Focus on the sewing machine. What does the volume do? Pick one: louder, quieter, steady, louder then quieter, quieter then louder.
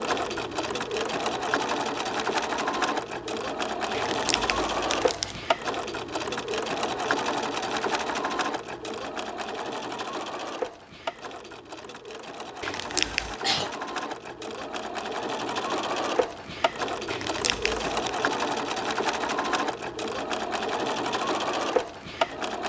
quieter then louder.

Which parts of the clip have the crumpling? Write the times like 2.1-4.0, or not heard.
3.9-5.4, 12.6-13.3, 17.1-18.1.